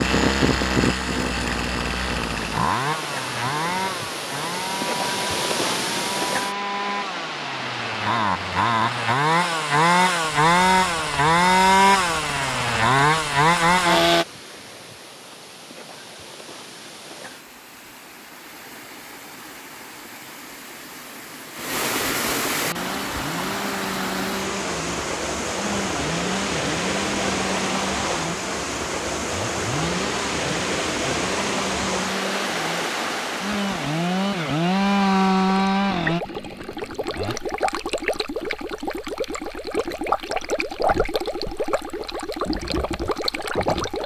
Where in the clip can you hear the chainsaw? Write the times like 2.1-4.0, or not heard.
0.0-14.2, 22.6-37.4.